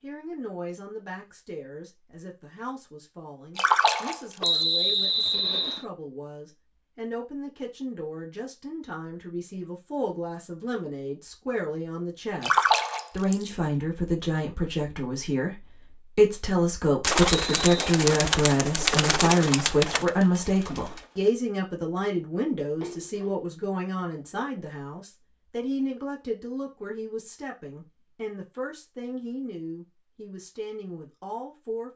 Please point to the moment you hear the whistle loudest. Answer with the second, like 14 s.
5 s.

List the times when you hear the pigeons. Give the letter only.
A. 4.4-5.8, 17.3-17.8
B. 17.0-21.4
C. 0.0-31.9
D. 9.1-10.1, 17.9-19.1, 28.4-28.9
B.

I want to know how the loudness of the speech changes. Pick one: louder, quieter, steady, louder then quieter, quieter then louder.
louder then quieter.